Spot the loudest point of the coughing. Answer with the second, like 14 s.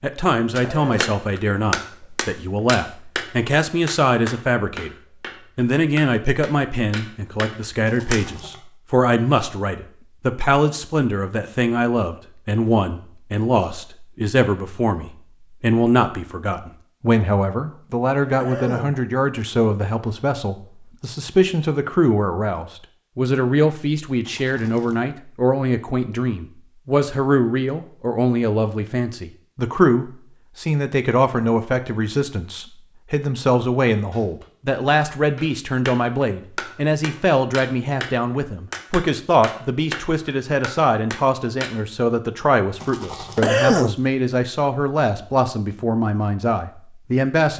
44 s.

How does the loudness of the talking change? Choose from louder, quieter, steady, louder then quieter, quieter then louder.
steady.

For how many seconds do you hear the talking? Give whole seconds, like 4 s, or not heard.
47 s.